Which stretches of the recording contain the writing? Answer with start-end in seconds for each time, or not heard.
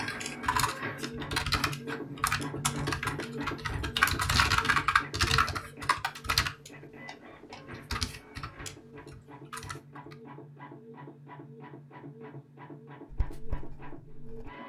13.1-14.5.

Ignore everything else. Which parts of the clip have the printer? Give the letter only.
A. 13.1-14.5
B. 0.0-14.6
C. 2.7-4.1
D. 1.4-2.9
B.